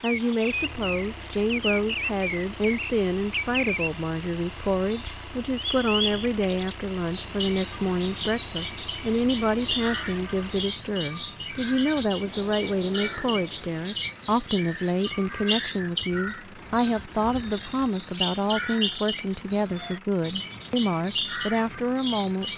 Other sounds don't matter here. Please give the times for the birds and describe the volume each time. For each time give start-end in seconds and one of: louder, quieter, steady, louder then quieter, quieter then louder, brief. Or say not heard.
0.0-22.5 steady.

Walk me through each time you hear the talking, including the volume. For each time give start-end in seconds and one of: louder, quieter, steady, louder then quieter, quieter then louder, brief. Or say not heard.
0.0-22.5 steady.